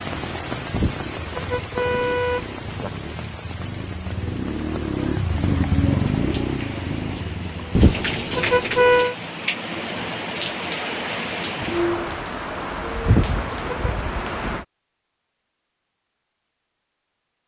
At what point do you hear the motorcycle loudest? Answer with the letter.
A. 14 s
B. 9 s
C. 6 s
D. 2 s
C.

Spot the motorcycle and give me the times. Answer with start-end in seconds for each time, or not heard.
0.0-8.2.